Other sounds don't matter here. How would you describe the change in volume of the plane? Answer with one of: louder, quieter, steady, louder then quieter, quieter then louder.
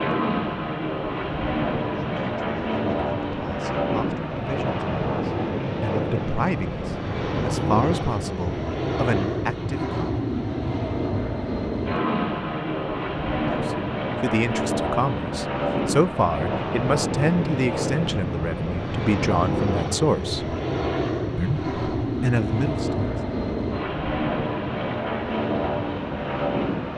steady.